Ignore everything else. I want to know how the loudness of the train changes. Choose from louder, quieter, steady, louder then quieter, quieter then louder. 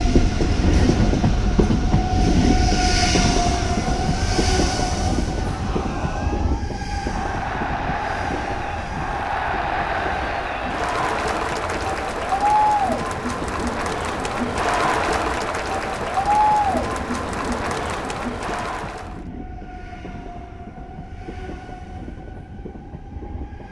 quieter.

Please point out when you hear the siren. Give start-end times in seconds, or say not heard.
not heard.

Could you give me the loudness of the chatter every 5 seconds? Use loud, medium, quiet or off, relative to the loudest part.
quiet, medium, loud, loud, off.